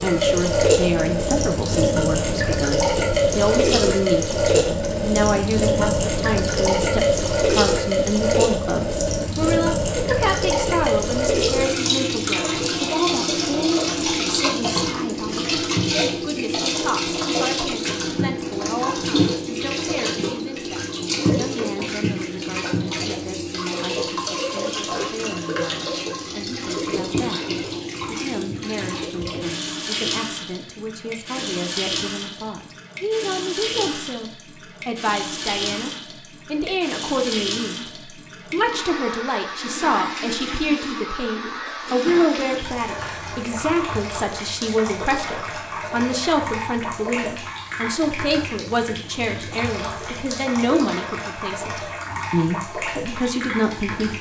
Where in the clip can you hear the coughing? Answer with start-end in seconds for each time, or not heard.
not heard.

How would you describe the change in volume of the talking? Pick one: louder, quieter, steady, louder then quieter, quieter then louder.
quieter then louder.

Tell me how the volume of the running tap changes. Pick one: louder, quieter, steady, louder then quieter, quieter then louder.
quieter.